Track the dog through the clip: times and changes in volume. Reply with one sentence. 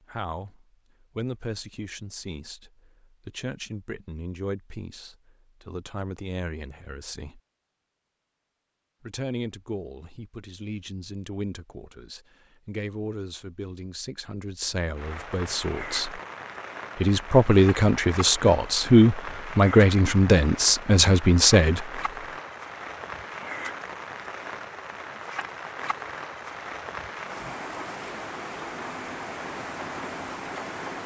You can't hear the dog here.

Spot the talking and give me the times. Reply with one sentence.
You can hear the talking from 0.1 to 7.4 s, from 9.0 to 16.2 s and from 16.9 to 22.0 s.